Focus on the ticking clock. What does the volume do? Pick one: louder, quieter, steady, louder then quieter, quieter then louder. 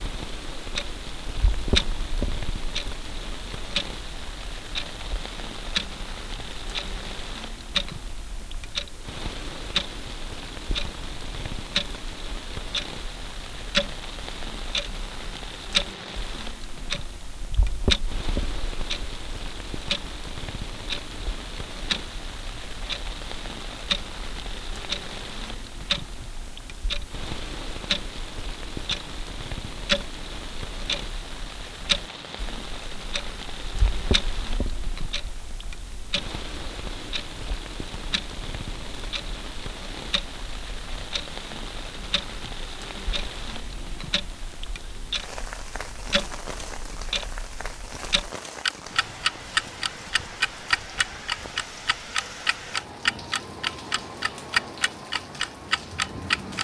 quieter then louder.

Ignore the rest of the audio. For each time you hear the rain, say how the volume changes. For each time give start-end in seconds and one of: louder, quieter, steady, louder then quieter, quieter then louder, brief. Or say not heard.
0.0-56.5 steady.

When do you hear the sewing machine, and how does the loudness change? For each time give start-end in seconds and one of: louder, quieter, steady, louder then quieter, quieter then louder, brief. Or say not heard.
not heard.